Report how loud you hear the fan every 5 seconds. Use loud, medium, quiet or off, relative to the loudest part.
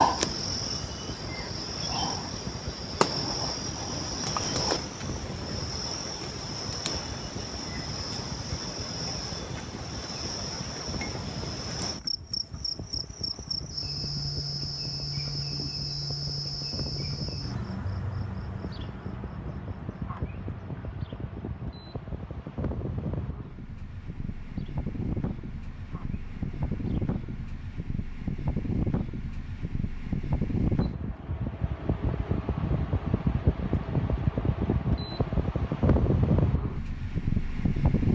quiet, quiet, quiet, quiet, medium, medium, loud, loud.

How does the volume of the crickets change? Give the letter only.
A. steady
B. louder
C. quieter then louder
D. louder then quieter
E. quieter
E.